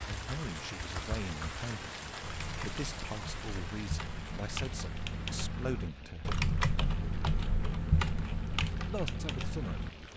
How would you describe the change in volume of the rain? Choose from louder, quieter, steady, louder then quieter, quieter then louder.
quieter.